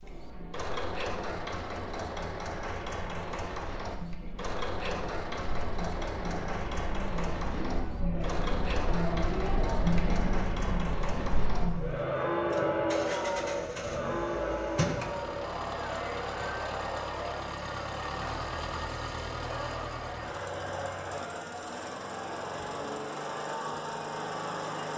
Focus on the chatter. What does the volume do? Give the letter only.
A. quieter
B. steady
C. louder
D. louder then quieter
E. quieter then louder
D.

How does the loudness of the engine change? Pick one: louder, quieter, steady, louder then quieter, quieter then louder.
steady.